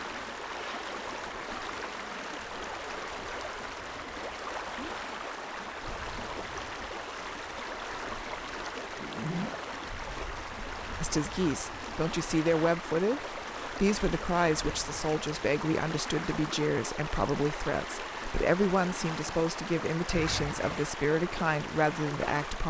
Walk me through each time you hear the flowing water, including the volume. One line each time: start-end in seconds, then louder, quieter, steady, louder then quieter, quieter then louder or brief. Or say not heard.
0.0-22.6 steady.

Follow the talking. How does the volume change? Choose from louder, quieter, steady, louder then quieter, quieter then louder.
steady.